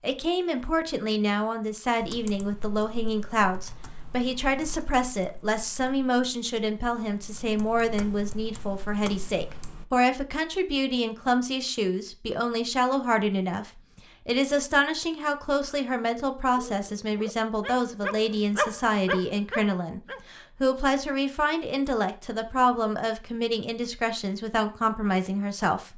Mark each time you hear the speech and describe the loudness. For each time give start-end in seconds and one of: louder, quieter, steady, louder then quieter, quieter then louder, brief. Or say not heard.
0.0-25.9 steady.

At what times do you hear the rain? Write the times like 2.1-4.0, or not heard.
not heard.